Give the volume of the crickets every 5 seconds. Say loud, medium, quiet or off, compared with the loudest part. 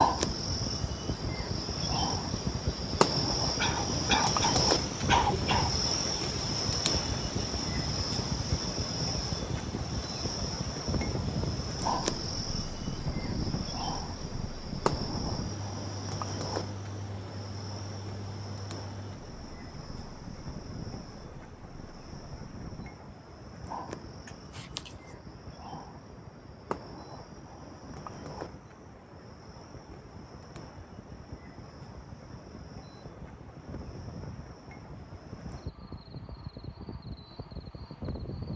loud, loud, medium, medium, quiet, quiet, quiet, quiet.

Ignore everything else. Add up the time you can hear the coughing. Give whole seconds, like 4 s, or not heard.
3 s.